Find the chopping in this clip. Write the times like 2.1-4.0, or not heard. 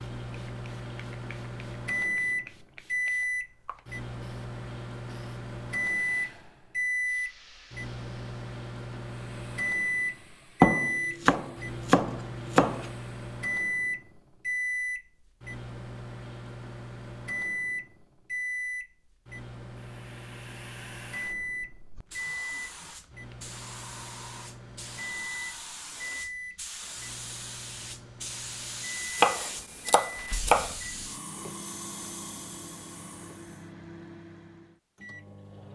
10.6-12.9, 29.1-30.8.